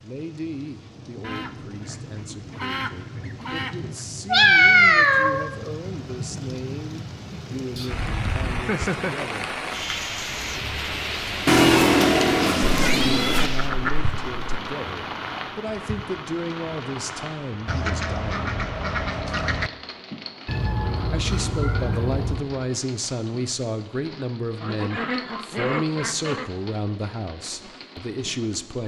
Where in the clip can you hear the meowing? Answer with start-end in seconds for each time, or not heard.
4.3-5.5, 11.4-13.5, 20.4-22.4.